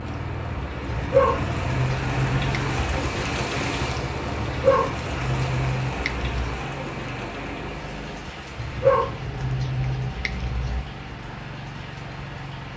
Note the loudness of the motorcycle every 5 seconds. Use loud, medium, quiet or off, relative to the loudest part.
loud, medium, medium.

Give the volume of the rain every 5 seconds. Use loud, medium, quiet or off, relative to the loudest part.
loud, loud, medium.